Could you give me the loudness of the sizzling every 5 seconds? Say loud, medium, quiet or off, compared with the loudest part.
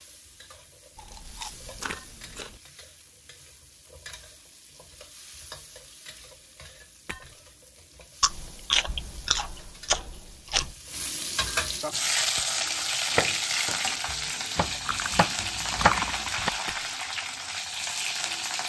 quiet, quiet, loud, loud.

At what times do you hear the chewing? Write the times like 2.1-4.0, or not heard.
0.9-2.6, 8.2-10.8, 14.8-16.5.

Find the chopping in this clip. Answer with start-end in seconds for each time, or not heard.
13.1-16.5.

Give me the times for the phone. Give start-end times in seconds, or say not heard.
not heard.